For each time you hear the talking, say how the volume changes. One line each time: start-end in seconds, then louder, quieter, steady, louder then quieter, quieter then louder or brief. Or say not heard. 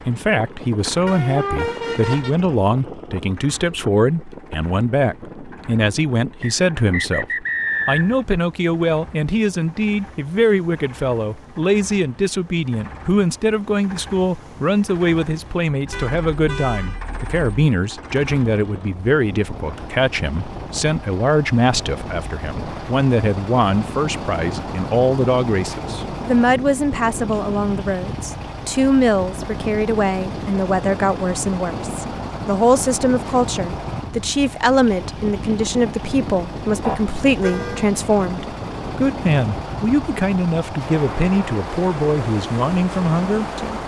0.1-43.8 steady.